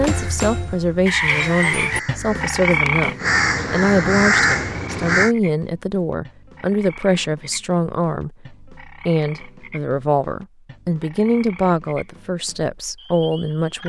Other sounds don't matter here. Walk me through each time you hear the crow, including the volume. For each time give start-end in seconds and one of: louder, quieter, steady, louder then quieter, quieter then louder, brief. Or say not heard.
0.0-5.3 louder.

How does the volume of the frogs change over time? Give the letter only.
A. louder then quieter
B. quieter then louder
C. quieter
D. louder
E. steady
C.